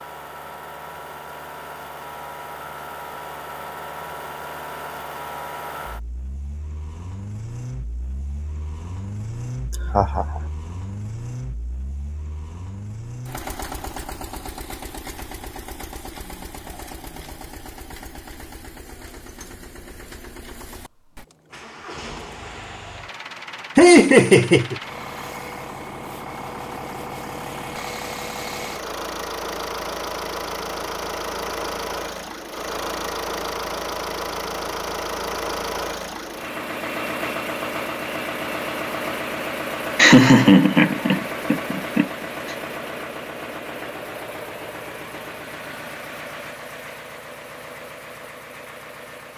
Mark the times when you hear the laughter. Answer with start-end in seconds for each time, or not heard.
9.9-10.4, 23.8-24.8, 40.0-42.1.